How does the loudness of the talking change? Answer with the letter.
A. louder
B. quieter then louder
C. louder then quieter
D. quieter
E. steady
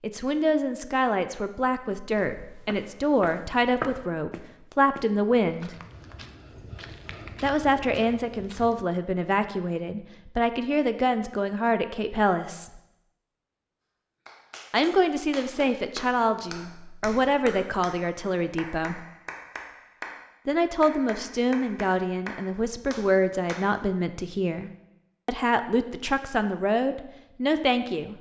E.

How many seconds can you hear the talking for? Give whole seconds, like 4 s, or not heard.
23 s.